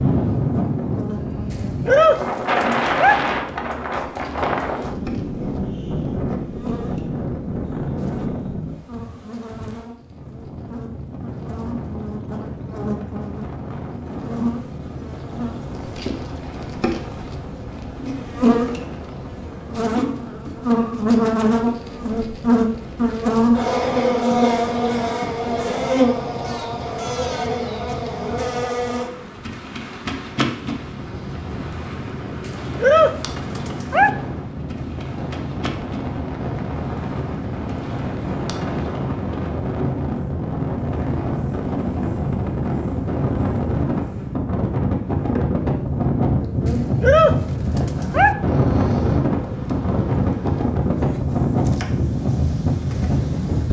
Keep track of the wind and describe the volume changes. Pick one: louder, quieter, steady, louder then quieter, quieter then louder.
quieter then louder.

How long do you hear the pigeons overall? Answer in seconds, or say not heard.
4 s.